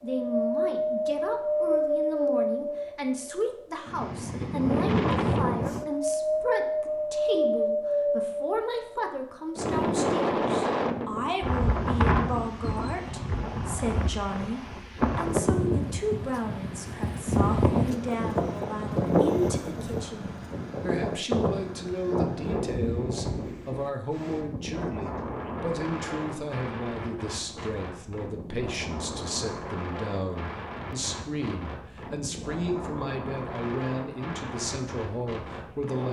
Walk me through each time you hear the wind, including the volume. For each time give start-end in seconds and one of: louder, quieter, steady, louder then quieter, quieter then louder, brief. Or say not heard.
0.1-36.0 quieter.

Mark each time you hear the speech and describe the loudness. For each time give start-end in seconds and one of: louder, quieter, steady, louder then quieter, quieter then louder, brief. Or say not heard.
0.0-36.0 steady.